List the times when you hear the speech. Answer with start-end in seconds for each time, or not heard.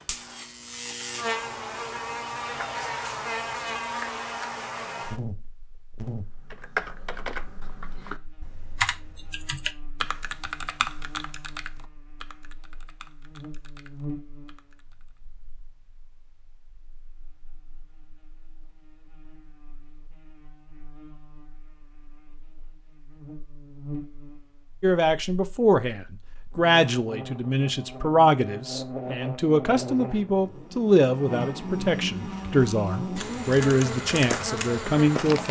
24.8-35.4.